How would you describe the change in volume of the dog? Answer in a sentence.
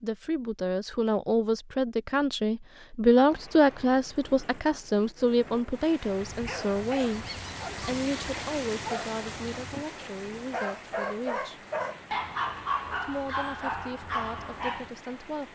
The loudness of the dog goes up.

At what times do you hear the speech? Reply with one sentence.
The speech can be heard from 0.0 to 11.7 s and from 12.9 to 15.5 s.